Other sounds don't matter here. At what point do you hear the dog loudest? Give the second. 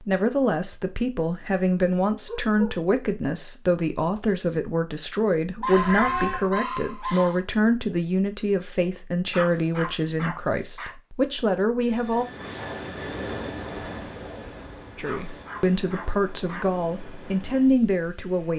6 s.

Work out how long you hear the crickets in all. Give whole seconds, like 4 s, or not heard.
not heard.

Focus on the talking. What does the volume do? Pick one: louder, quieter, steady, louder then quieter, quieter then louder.
steady.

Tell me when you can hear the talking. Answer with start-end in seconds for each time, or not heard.
0.0-12.2, 14.9-18.5.